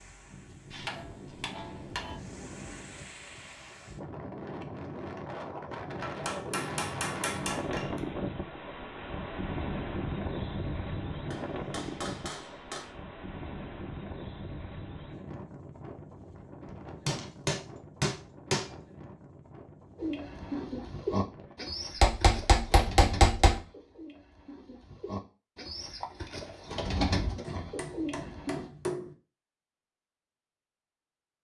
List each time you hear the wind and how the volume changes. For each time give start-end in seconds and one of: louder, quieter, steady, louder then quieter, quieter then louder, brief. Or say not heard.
0.0-21.6 louder then quieter.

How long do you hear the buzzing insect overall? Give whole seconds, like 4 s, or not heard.
not heard.